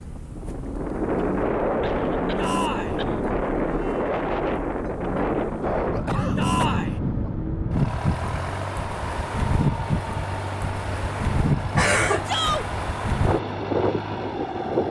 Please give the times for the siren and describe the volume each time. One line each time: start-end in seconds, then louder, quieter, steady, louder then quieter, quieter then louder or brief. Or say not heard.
not heard.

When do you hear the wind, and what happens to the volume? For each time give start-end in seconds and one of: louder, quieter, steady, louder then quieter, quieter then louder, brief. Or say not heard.
0.0-14.8 steady.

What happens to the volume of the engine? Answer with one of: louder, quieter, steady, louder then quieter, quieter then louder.
steady.